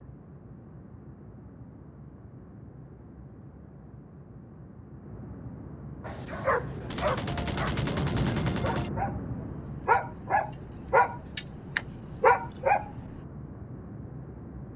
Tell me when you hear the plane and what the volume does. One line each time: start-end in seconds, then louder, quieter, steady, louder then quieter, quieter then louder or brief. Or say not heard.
0.0-14.7 louder then quieter.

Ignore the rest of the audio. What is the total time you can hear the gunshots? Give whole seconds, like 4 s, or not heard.
2 s.